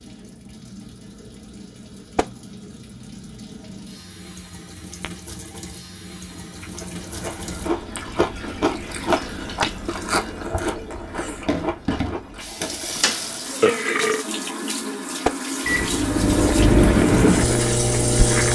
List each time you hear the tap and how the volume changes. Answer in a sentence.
The tap can be heard from 0.0 to 18.5 s, getting louder.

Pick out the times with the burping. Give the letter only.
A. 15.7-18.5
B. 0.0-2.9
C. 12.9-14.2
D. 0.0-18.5
C.